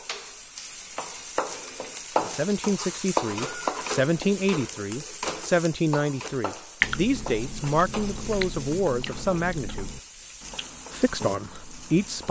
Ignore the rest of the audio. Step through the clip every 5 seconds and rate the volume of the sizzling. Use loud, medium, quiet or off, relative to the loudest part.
loud, medium, medium.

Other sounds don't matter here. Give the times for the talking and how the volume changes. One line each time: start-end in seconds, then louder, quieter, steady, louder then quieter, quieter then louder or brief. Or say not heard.
2.2-9.9 steady
10.9-12.2 brief.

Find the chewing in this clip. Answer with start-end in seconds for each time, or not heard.
6.8-12.2.